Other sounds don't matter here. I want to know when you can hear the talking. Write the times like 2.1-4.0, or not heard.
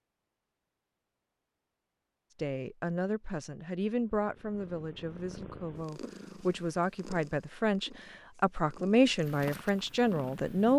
2.4-10.7.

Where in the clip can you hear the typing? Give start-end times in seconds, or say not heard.
not heard.